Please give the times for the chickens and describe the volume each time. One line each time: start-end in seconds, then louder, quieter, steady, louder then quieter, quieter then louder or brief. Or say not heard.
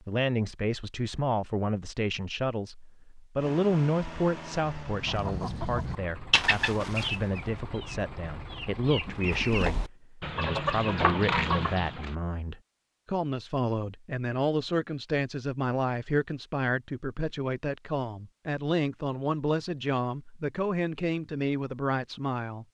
4.9-12.2 quieter then louder.